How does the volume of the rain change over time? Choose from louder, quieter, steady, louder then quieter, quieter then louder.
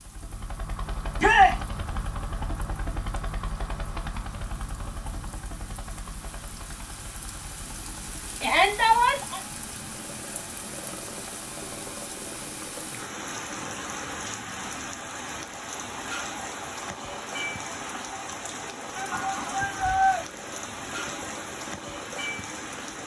louder.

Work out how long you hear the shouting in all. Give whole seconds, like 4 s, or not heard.
3 s.